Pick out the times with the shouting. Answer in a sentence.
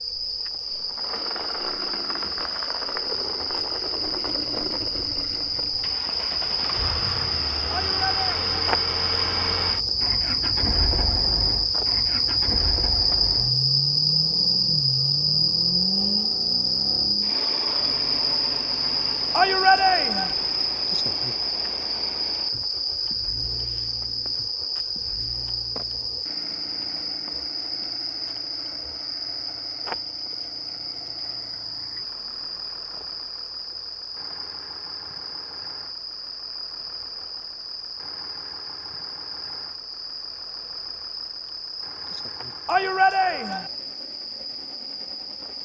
The shouting can be heard from 7.7 to 8.5 s, from 19.3 to 20.4 s and from 42.6 to 43.7 s.